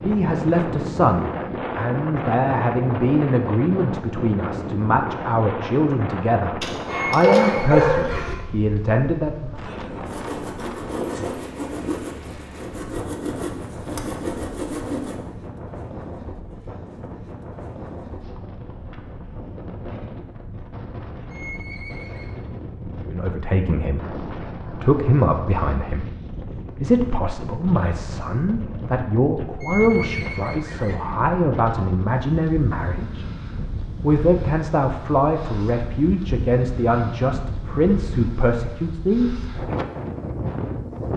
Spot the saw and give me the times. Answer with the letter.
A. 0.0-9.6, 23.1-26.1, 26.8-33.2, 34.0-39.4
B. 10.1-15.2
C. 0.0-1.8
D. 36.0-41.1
B.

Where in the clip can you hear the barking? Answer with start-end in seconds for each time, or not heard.
6.6-8.3.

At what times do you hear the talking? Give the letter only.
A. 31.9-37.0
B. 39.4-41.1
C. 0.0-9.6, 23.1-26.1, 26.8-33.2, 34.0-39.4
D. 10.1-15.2
C.